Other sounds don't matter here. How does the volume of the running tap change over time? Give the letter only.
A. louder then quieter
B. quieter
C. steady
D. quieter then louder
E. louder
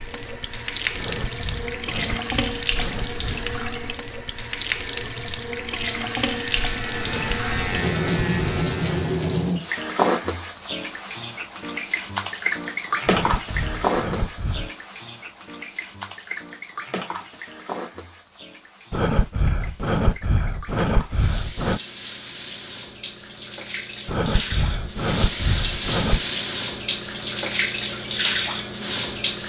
D.